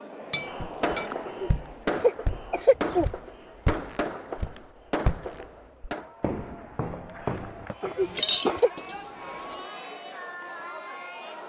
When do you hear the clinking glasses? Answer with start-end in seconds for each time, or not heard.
0.3-1.1, 8.1-9.6.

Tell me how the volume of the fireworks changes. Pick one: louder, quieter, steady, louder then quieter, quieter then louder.
steady.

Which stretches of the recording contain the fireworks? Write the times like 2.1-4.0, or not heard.
0.1-6.1.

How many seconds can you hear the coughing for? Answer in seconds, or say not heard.
3 s.